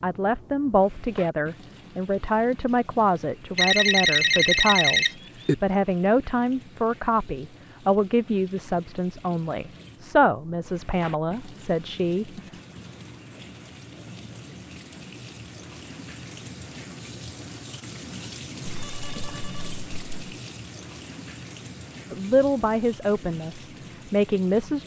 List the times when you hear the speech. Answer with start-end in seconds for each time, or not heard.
0.0-12.3, 22.1-24.8.